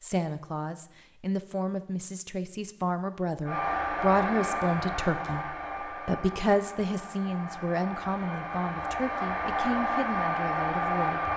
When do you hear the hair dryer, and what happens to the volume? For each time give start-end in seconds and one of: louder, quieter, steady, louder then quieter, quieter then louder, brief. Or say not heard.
3.5-11.3 quieter then louder.